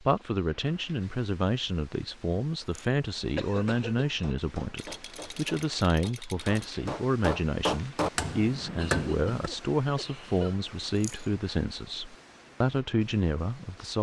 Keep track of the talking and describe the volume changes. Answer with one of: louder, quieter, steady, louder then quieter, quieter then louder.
steady.